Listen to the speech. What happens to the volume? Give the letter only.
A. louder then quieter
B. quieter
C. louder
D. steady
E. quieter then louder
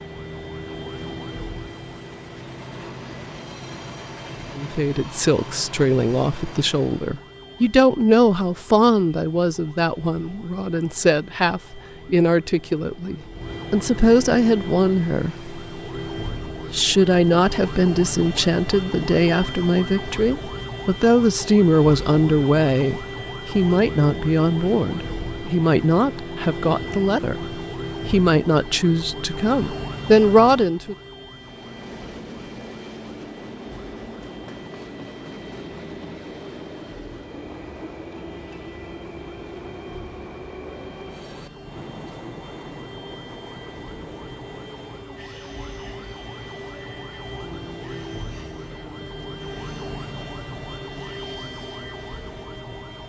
D.